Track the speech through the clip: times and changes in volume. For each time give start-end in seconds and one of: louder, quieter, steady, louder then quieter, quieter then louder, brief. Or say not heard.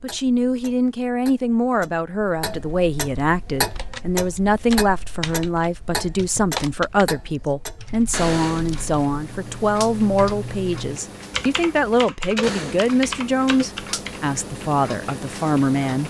0.0-16.0 steady.